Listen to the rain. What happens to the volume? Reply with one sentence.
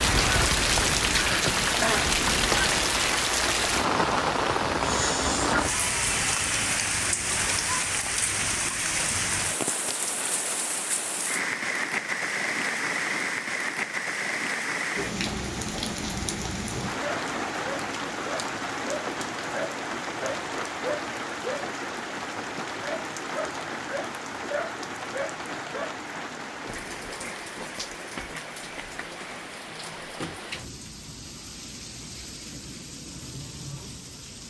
The loudness of the rain goes down.